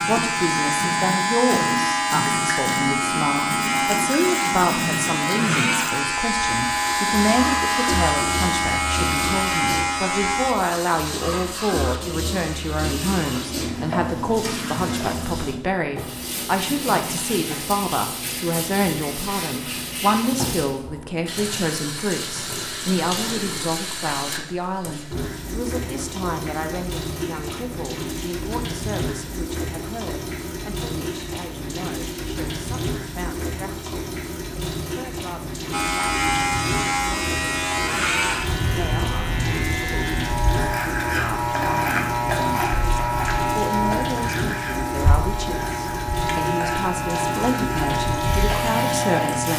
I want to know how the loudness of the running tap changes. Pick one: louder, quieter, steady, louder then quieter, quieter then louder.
steady.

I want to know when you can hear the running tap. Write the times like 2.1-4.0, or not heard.
0.0-49.5.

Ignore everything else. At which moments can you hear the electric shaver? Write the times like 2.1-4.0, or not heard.
0.0-10.6, 35.7-49.5.